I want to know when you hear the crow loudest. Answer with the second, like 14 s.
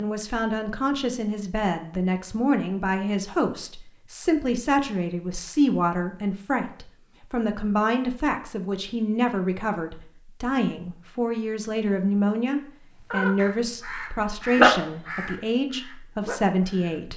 15 s.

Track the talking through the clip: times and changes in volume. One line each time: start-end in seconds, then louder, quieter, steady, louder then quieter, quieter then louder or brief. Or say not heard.
0.0-17.1 steady.